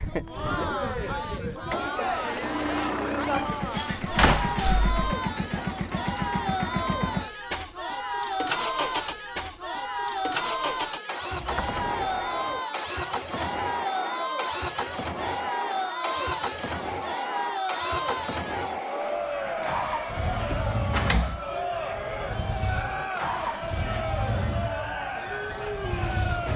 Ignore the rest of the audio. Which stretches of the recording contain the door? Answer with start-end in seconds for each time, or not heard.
3.3-5.0, 11.3-12.6, 20.4-21.4.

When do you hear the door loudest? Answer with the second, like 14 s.
4 s.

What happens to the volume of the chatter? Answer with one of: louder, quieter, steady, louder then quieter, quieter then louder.
steady.